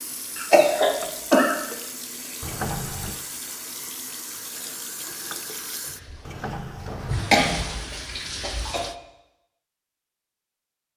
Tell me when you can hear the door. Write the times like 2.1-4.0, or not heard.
2.4-3.2, 6.2-8.1.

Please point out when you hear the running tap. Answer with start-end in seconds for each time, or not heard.
0.0-8.9.